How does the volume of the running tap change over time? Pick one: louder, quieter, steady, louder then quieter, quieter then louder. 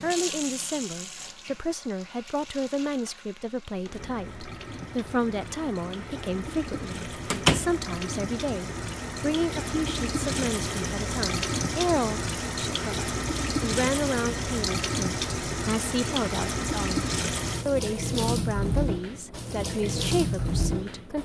louder.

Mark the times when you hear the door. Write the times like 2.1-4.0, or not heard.
7.3-7.7.